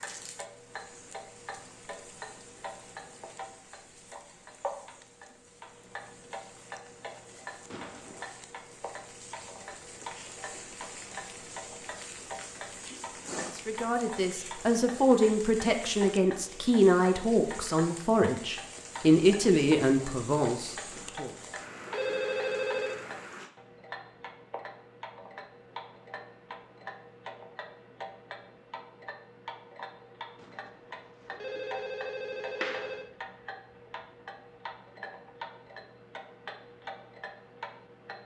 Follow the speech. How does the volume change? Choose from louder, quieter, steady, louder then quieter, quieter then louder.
steady.